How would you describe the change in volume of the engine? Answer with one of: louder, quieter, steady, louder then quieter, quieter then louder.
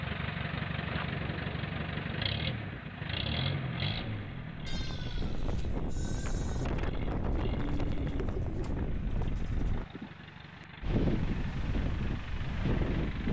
quieter.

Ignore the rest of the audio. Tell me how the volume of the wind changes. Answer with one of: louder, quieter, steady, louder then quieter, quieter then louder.
louder.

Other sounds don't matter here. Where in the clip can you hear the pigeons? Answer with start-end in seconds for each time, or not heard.
7.3-8.9.